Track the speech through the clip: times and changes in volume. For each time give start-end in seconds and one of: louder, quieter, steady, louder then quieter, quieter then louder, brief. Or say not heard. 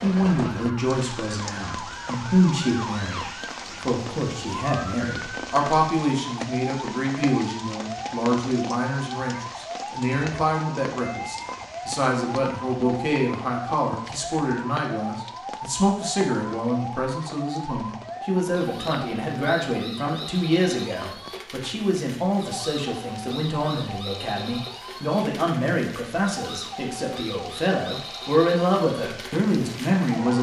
0.0-30.3 steady.